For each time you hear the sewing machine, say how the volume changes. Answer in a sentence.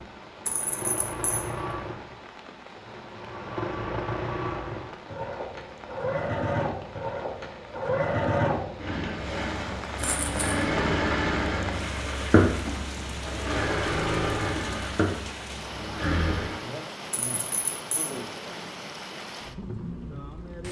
You can hear the sewing machine from 0.0 to 16.6 s, getting louder.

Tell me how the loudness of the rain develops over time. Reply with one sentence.
The loudness of the rain goes up.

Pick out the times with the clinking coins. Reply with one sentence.
The clinking coins can be heard from 0.5 to 1.4 s, from 9.9 to 10.4 s and from 17.1 to 18.1 s.